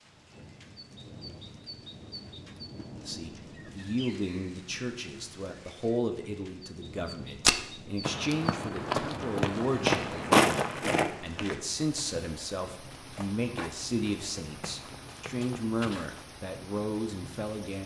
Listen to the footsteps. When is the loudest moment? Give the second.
10 s.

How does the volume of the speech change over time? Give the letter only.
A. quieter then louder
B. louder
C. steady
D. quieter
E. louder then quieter
C.